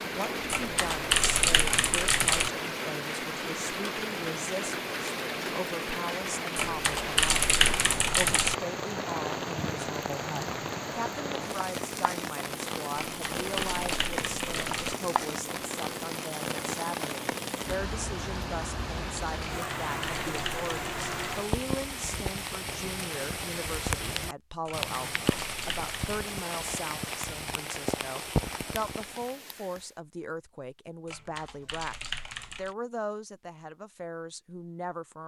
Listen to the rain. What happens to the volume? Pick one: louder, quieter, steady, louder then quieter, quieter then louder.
steady.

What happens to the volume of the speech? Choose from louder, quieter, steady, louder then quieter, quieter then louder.
steady.